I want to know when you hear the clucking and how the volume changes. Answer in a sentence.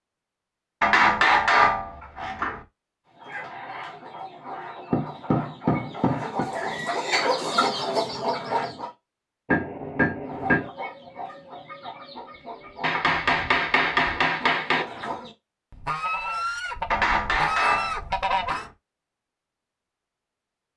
You can hear the clucking from 3.0 to 8.9 s, getting louder; and from 10.2 to 18.6 s, getting louder.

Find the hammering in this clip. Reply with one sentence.
The hammering can be heard from 0.8 to 2.6 s, from 4.9 to 6.5 s, from 9.4 to 10.7 s, from 12.8 to 14.8 s and from 16.9 to 18.7 s.